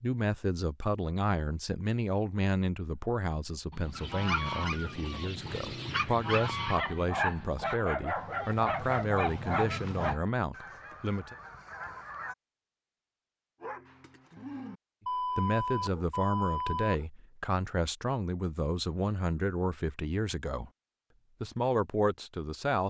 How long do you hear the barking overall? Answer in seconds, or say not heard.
10 s.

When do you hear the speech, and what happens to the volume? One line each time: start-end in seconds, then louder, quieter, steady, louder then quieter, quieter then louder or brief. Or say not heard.
0.0-11.3 steady
15.3-20.7 steady
21.4-22.8 brief.